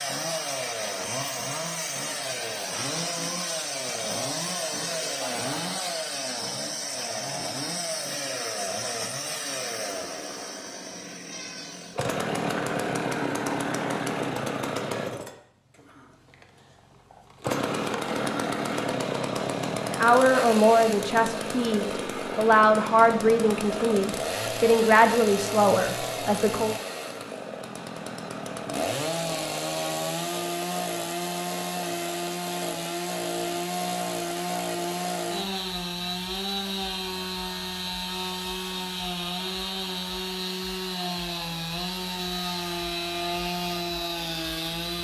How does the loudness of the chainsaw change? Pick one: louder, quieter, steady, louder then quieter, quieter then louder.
steady.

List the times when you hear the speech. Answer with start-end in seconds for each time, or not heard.
19.9-26.8.